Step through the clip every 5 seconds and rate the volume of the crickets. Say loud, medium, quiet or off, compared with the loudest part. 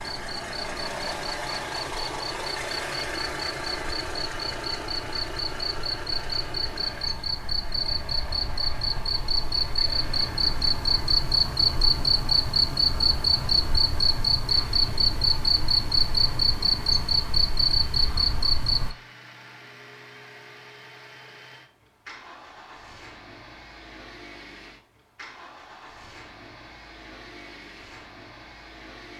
quiet, medium, loud, loud, off, off.